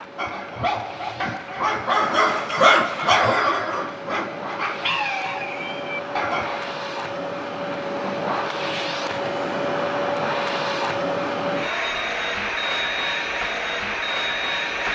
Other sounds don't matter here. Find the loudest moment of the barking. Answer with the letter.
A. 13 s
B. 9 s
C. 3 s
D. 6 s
C.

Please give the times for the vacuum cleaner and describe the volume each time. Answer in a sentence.
You can hear the vacuum cleaner from 0.0 to 14.8 s, getting louder.